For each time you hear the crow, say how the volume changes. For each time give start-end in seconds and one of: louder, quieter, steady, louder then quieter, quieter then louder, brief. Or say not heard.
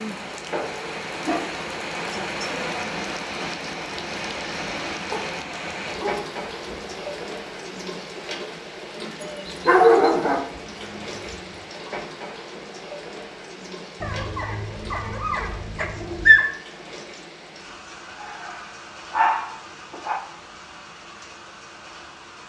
not heard.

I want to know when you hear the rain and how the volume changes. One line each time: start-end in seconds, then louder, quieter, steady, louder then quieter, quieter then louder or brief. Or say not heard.
0.0-22.4 quieter.